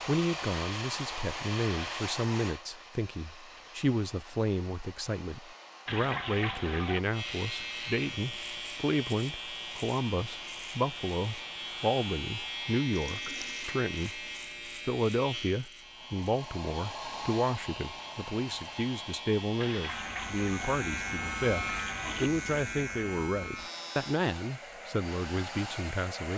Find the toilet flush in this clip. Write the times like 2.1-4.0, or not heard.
5.8-7.0, 12.9-13.8, 19.6-22.3.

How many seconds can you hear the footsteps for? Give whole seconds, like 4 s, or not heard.
not heard.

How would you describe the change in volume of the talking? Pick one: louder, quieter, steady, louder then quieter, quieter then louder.
steady.